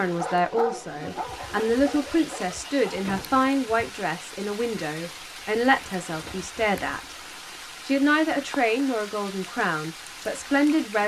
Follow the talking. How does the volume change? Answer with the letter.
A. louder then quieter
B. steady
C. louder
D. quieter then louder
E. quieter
B.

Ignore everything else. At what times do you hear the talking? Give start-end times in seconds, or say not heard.
0.0-7.0, 7.8-11.0.